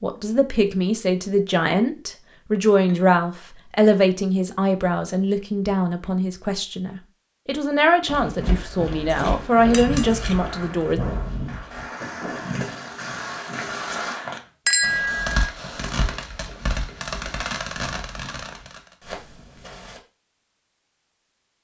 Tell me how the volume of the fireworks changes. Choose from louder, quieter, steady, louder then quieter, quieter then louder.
louder.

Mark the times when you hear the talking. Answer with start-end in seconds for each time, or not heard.
0.0-11.0.